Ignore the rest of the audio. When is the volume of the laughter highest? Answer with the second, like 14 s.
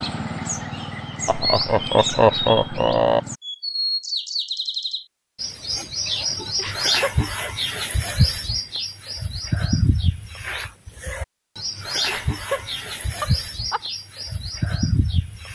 2 s.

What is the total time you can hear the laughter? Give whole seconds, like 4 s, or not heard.
5 s.